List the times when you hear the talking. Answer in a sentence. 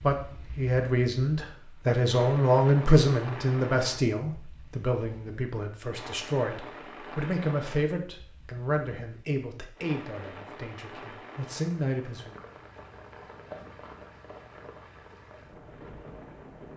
You can hear the talking from 0.0 to 12.3 s.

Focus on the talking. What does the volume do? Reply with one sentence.
The loudness of the talking goes down.